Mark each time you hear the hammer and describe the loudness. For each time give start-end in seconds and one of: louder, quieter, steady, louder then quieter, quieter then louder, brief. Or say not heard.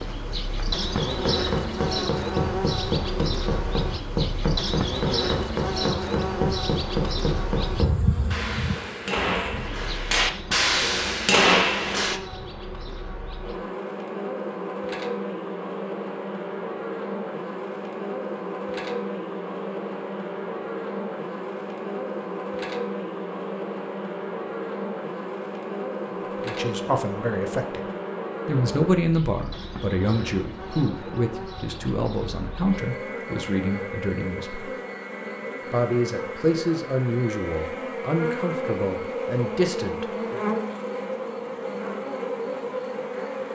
0.9-12.2 louder.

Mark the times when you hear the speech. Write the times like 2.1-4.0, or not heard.
26.4-27.9, 28.4-34.6, 35.7-40.5.